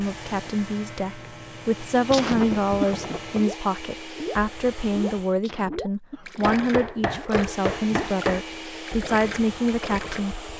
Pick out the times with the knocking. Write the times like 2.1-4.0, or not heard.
2.1-3.4, 6.4-8.4.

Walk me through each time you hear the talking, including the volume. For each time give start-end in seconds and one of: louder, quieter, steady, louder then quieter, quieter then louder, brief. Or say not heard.
0.0-10.4 steady.